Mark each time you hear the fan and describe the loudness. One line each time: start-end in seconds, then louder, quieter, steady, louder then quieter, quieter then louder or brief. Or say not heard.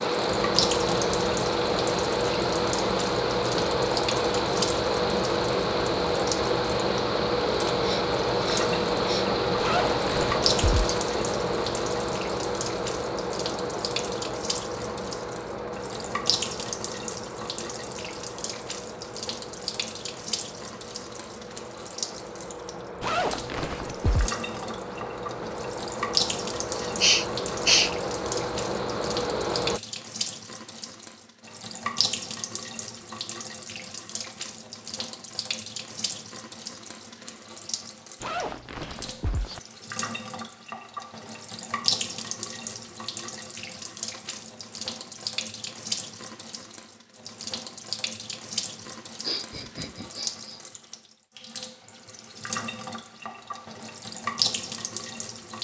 0.0-29.8 quieter then louder.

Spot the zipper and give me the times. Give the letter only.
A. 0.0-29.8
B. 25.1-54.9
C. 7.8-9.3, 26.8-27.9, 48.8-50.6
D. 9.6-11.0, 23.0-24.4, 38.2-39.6
D.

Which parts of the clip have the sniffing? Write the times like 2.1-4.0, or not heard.
7.8-9.3, 26.8-27.9, 48.8-50.6.